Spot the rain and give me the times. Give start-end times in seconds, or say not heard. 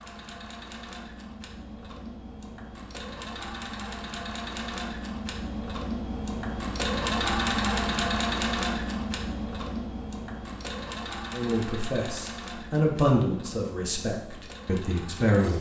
not heard.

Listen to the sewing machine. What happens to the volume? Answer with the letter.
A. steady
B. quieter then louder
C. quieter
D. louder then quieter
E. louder
D.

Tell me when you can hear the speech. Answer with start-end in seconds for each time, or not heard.
11.3-15.5.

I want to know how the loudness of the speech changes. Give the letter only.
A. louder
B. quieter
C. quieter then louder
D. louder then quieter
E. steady
D.